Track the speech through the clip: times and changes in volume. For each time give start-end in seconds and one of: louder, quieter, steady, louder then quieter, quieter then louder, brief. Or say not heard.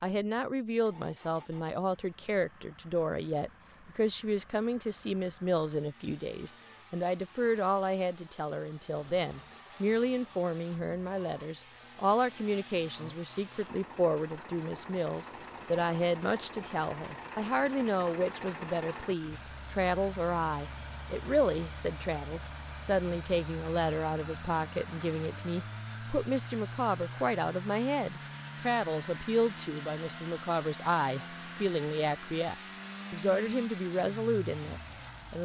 0.0-35.3 steady.